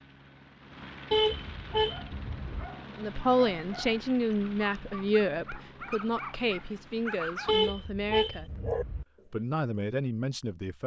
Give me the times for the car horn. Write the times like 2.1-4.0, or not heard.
1.1-2.6, 7.5-9.1.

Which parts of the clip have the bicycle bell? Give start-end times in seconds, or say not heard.
not heard.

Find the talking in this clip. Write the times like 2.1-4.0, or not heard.
3.0-10.8.